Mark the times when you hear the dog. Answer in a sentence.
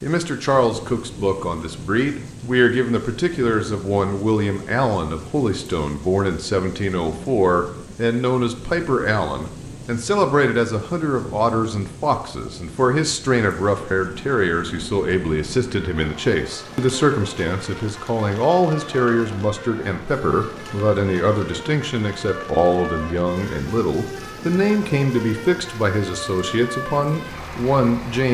You can't hear the dog here.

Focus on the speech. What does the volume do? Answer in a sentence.
The loudness of the speech stays about the same.